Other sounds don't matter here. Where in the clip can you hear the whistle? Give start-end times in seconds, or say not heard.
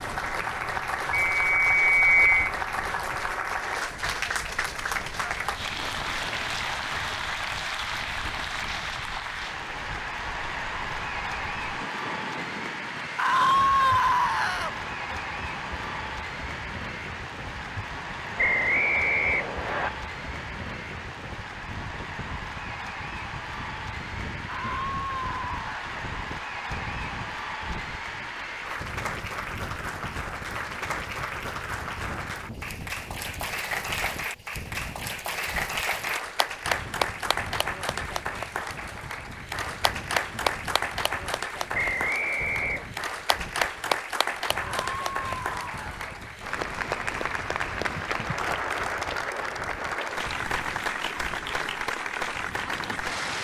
1.1-2.4, 18.4-19.9, 41.7-42.9.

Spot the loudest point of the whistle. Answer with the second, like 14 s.
2 s.